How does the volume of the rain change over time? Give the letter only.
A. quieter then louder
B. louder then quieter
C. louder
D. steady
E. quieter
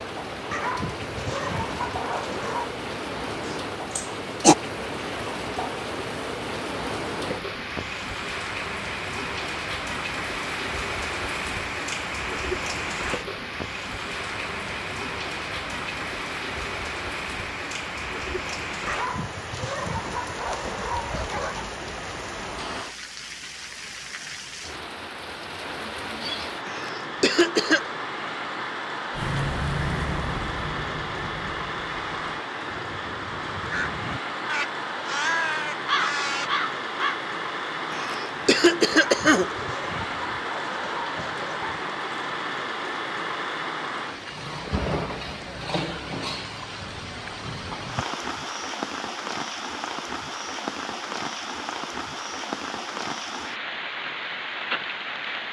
D.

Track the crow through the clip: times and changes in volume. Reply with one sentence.
The crow can be heard from 29.1 to 37.2 s, getting quieter then louder.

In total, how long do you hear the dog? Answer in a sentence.
The dog can be heard for 8 seconds in total.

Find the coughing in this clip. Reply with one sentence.
You can hear the coughing from 3.5 to 4.5 s, from 26.6 to 27.9 s and from 37.9 to 39.7 s.